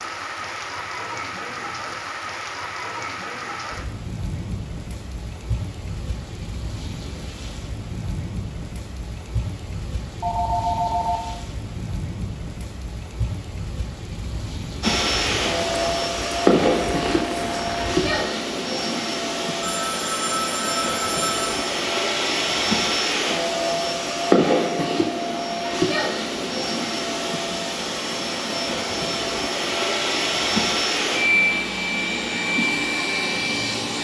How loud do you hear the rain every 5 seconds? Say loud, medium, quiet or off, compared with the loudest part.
loud, loud, loud, loud, off, off, off.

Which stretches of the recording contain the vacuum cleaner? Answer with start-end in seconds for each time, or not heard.
14.8-33.9.